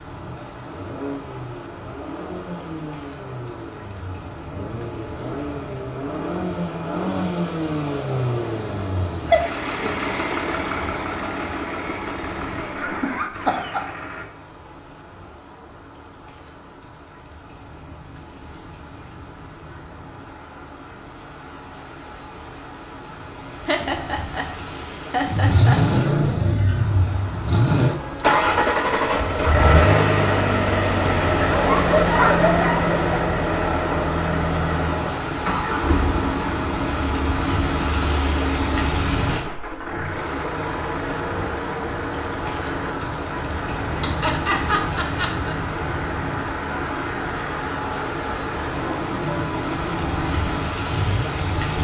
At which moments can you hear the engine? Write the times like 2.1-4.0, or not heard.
0.0-14.2, 25.3-51.7.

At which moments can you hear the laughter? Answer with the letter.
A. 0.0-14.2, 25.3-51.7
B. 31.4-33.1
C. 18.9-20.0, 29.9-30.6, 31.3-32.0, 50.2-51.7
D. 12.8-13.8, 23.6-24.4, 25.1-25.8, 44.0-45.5
D.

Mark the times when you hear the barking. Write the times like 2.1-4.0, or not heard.
31.4-33.1.